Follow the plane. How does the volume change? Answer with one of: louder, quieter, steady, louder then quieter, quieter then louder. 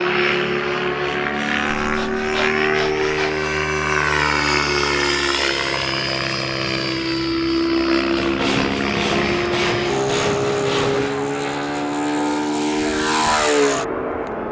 steady.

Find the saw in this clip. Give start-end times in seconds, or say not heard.
1.8-3.5, 8.2-11.2.